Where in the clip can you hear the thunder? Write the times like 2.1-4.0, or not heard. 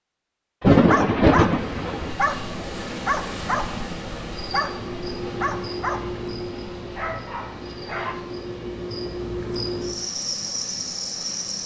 0.6-2.1.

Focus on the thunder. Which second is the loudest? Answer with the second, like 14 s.
1 s.